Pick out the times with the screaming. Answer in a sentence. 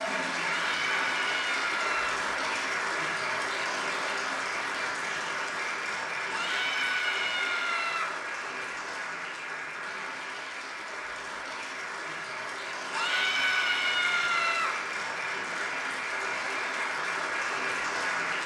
The screaming can be heard from 0.4 to 2.1 s, from 6.3 to 8.1 s and from 12.9 to 14.8 s.